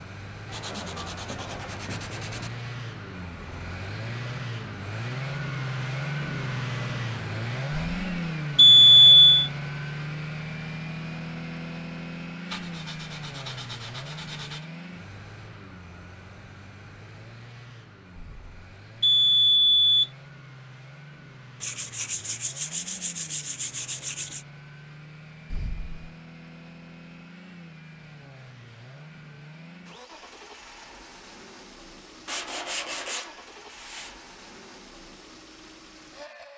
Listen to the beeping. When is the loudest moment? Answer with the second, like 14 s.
9 s.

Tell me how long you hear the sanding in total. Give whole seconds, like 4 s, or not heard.
9 s.